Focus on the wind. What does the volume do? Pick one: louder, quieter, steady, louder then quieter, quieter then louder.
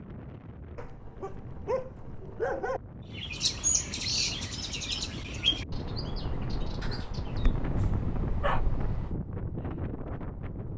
louder.